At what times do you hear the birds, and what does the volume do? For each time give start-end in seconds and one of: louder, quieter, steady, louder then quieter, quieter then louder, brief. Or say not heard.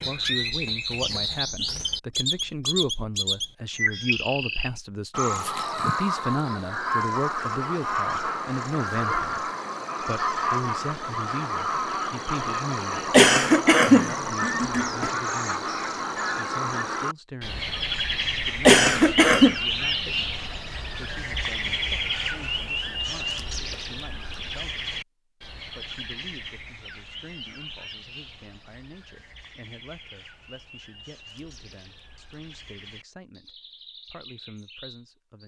0.0-35.4 quieter.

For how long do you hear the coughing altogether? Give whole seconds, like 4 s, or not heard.
3 s.